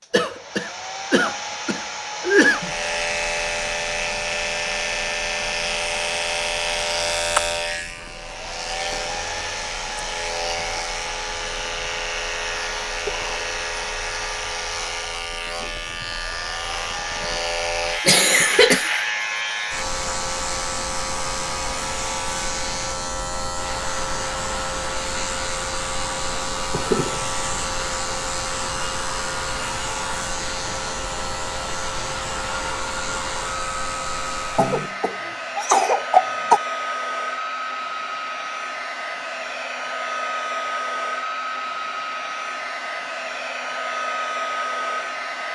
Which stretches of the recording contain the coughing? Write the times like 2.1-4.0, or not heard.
0.1-2.7, 18.1-18.9, 34.5-36.6.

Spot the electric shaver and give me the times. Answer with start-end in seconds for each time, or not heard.
2.5-35.0.